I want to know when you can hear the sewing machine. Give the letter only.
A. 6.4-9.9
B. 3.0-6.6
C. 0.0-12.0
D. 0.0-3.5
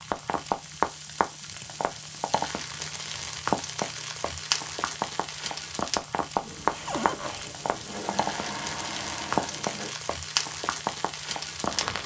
A.